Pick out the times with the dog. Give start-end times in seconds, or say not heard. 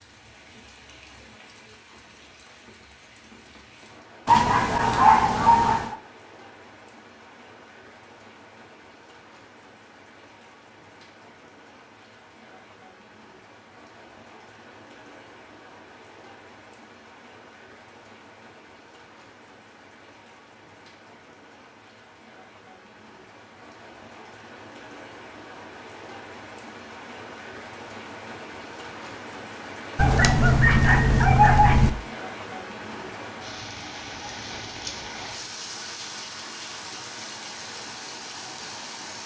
4.2-6.0, 29.9-31.9.